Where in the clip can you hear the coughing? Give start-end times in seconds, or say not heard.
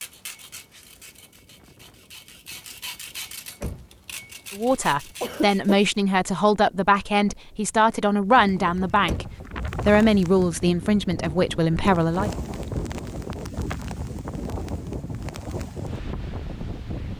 5.2-5.8.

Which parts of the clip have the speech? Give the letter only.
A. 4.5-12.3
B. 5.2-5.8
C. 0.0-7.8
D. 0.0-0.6
A.